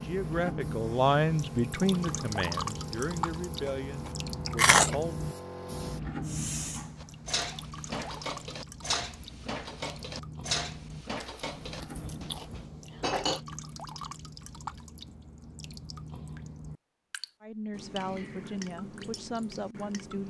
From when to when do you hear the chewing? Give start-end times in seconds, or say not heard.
3.6-5.0, 11.2-12.7.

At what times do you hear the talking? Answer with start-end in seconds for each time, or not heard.
0.0-5.3, 17.4-20.2.